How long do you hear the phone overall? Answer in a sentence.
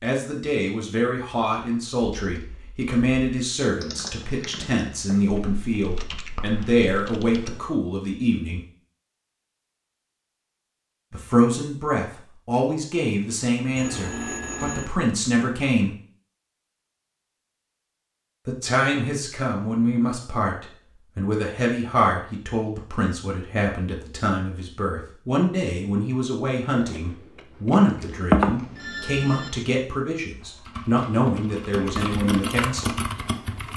You can hear the phone for 3 seconds altogether.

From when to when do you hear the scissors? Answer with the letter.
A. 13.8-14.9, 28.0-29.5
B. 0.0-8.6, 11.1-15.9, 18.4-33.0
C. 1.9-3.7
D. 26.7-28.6
D.